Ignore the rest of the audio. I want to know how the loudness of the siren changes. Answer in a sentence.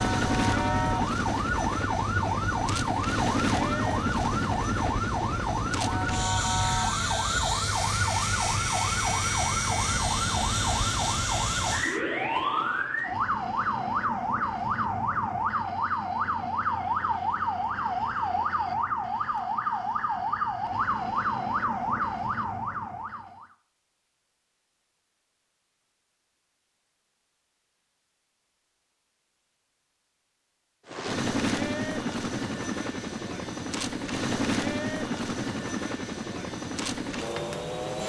The volume of the siren stays about the same.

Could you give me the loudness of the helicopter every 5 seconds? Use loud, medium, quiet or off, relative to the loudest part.
loud, loud, loud, off, off, off, loud, loud.